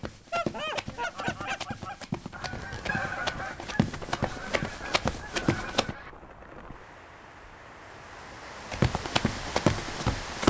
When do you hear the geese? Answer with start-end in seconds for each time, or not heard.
0.3-6.2.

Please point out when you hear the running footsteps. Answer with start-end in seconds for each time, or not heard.
0.0-6.0, 8.7-10.4.